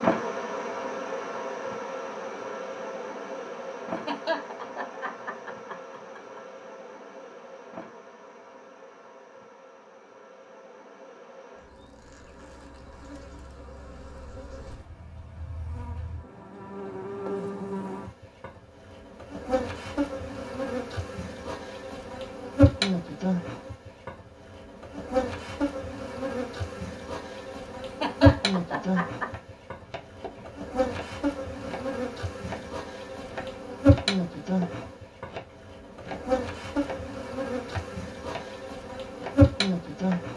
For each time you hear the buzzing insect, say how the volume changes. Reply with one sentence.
The buzzing insect can be heard from 0.0 to 40.3 s, getting quieter then louder.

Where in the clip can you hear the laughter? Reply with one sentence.
The laughter can be heard from 3.9 to 6.4 s and from 27.9 to 29.3 s.